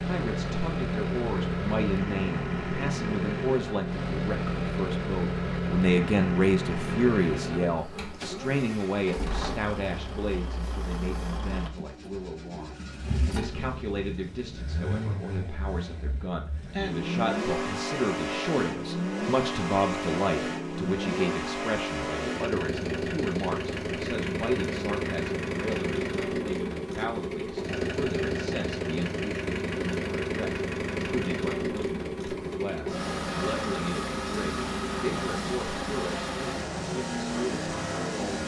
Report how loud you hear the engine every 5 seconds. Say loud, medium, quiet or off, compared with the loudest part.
loud, loud, medium, loud, loud, loud, loud, loud.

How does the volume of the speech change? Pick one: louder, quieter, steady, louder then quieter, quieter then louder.
quieter.